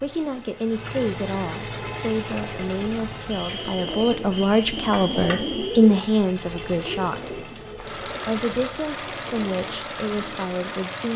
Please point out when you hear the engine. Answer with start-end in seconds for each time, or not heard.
0.0-11.1.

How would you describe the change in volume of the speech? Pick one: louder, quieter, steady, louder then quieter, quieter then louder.
louder then quieter.